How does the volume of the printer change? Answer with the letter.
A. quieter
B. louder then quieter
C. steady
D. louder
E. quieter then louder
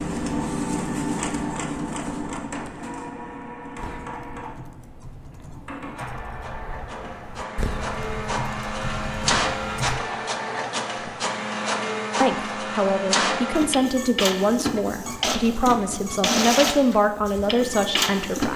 E.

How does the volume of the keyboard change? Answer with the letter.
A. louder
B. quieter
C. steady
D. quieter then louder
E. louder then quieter
A.